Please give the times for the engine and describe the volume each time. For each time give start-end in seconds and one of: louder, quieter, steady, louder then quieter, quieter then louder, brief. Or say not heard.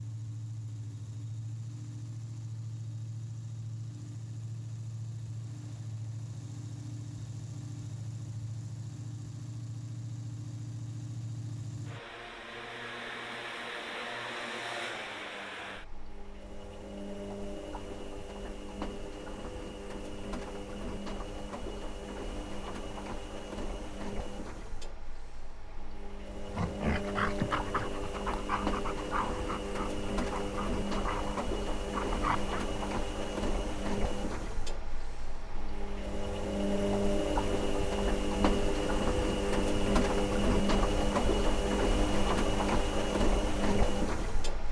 0.0-44.6 louder.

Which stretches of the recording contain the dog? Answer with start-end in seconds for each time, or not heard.
26.5-32.5.